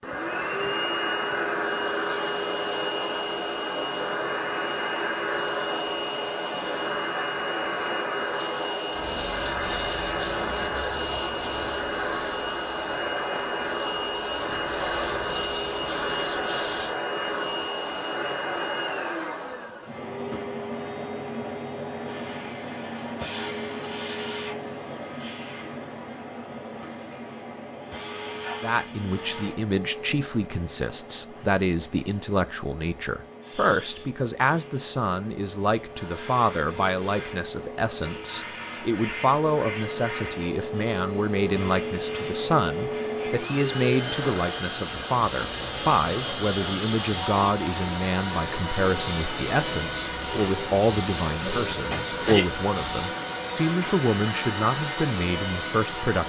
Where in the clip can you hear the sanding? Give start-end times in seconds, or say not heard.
8.9-16.9, 45.1-53.1.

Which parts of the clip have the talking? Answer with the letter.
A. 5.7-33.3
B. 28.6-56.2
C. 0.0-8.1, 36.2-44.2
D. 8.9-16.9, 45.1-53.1
B.